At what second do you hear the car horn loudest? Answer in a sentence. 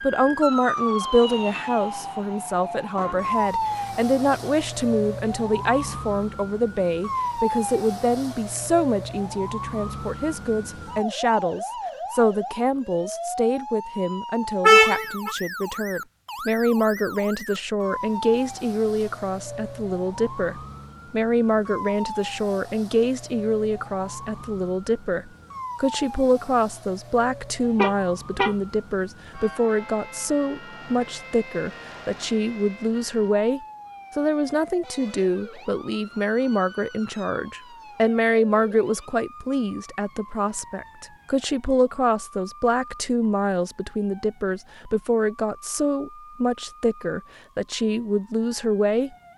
The loudest moment of the car horn is at 15 seconds.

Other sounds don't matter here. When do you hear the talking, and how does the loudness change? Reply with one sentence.
You can hear the talking from 0.0 to 49.1 s, at a steady volume.